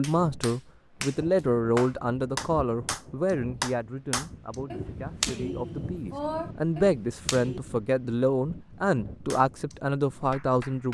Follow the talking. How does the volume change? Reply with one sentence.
The volume of the talking goes down, then up.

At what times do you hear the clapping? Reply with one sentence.
The clapping can be heard from 0.0 to 7.6 s and from 9.3 to 10.8 s.